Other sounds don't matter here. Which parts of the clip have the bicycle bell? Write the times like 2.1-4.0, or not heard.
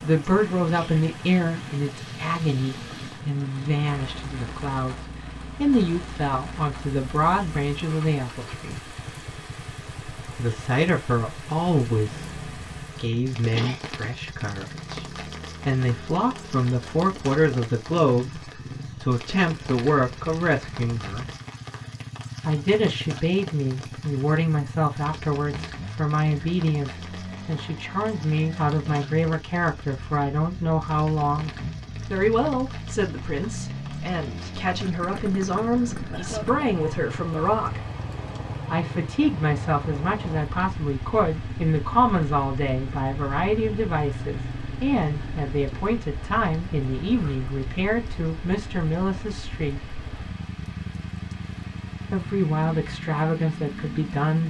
not heard.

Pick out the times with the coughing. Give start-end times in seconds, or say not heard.
13.1-13.9, 36.1-36.6.